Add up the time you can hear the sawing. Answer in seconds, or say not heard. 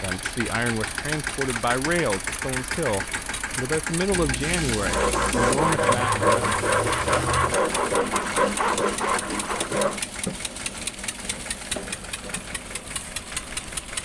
8 s.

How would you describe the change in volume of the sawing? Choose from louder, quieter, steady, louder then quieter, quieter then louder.
quieter.